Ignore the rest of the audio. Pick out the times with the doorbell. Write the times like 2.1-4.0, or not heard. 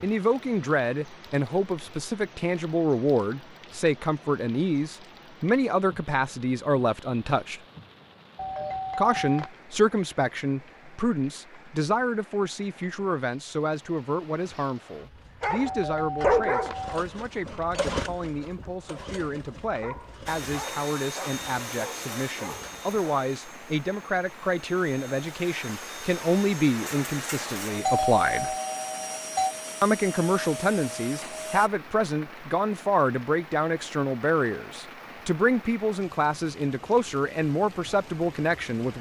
8.3-9.5, 15.7-16.9, 27.9-29.6.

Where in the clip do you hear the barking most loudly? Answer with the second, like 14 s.
16 s.